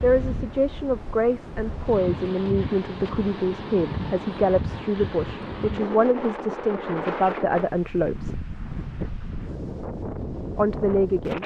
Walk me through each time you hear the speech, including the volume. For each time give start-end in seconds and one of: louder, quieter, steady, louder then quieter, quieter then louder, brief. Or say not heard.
0.0-8.4 steady
10.6-11.4 brief.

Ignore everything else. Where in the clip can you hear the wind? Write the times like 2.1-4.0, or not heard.
0.0-11.4.